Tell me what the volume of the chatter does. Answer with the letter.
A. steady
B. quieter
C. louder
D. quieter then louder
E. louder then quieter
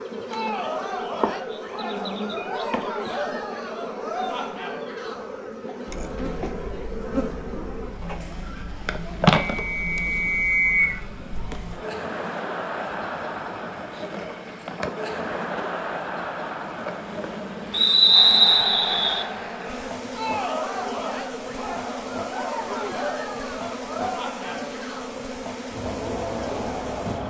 D.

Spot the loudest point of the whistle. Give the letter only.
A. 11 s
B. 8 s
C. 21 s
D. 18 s
D.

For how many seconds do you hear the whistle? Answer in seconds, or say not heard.
3 s.